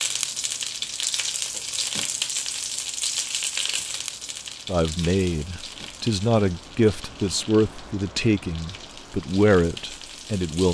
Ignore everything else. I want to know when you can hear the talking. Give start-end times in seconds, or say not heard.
4.7-10.6.